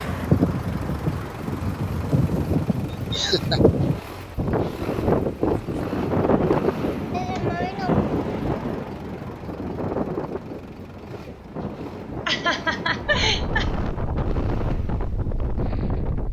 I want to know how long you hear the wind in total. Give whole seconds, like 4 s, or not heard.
16 s.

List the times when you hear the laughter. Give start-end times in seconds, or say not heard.
3.1-3.6, 7.1-8.0, 12.2-13.7.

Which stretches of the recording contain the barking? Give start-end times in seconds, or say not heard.
not heard.